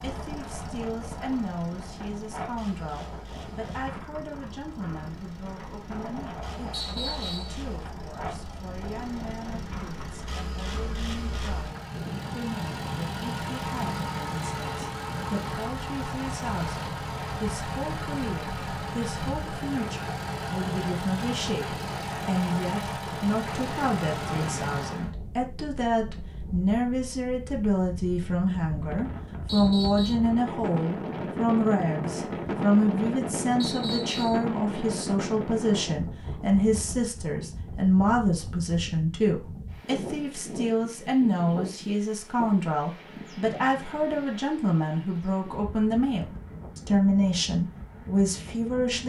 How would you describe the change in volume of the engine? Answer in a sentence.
The loudness of the engine goes up.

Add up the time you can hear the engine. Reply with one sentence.
The engine can be heard for 25 seconds in total.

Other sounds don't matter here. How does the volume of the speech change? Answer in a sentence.
The loudness of the speech goes up.